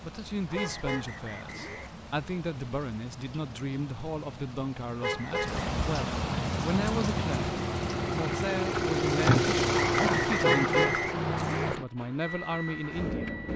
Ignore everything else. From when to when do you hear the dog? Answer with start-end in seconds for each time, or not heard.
not heard.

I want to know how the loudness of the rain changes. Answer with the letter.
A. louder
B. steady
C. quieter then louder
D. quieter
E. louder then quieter
A.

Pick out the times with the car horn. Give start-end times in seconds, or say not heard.
0.6-1.9, 5.0-5.6, 10.4-11.8.